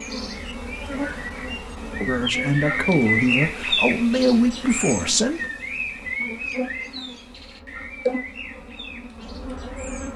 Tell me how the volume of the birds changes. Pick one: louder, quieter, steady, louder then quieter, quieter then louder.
louder then quieter.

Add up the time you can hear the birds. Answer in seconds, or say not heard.
10 s.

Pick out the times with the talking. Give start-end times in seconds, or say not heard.
2.0-5.4.